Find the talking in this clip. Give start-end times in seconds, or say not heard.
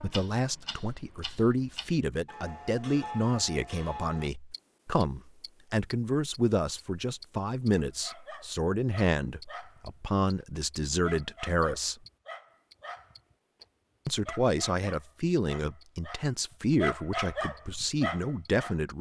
0.0-11.9, 14.1-18.9.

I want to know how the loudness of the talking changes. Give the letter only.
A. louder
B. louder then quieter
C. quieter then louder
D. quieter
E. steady
E.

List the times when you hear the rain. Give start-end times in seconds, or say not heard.
not heard.